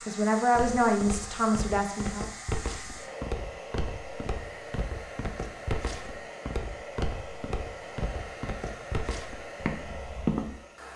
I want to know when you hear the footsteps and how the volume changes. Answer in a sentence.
You can hear the footsteps from 0.6 to 10.6 s, at a steady volume.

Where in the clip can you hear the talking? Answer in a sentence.
The talking can be heard from 0.0 to 2.2 s.